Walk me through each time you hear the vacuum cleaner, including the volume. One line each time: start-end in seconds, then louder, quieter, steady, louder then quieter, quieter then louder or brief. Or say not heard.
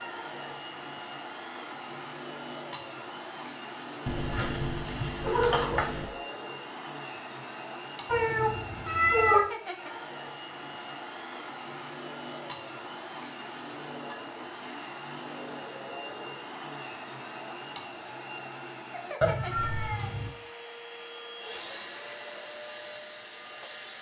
0.0-23.9 steady.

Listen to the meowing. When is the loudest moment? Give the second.
9 s.